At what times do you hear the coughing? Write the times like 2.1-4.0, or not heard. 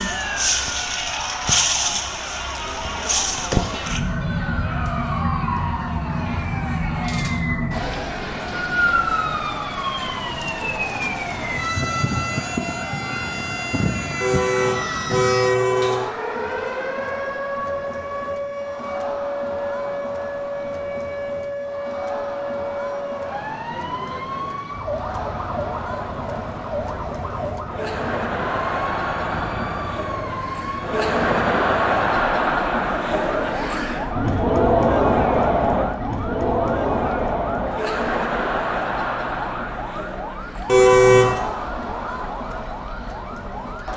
not heard.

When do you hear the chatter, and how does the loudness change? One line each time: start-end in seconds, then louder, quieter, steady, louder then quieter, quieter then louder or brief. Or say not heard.
0.1-43.9 louder.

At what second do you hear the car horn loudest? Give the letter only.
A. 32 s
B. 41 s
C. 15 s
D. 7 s
B.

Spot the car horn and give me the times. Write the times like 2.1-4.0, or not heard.
14.2-16.1, 40.6-41.4.